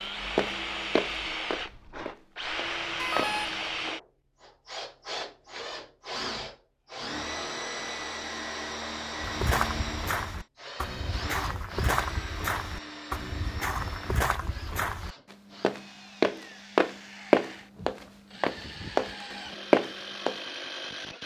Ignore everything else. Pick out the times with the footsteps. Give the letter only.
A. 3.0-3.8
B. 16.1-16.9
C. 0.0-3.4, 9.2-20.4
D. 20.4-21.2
C.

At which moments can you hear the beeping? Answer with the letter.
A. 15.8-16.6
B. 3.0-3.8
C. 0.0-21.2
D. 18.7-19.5
B.